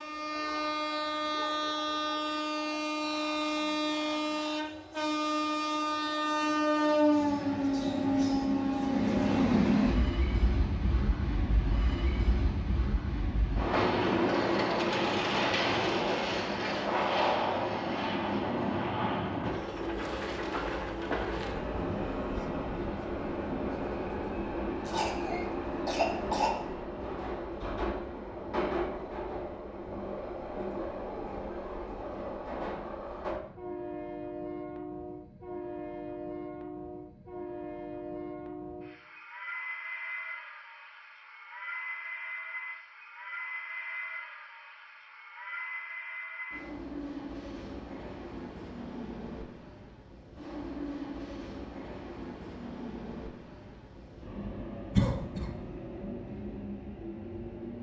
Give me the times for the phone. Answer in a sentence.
You can't hear the phone here.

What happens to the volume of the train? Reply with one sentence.
The loudness of the train goes down.